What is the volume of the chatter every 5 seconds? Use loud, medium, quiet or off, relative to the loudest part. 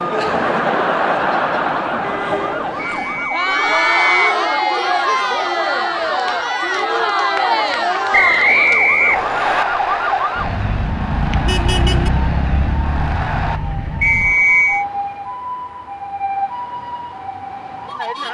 loud, loud, medium, off.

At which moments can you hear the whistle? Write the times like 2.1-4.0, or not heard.
3.0-4.3, 8.1-9.7, 14.0-14.8.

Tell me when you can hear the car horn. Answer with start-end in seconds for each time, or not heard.
2.0-2.6, 11.4-12.1.